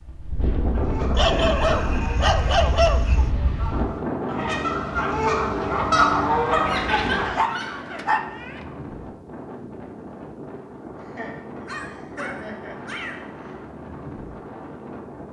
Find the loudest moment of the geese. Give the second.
6 s.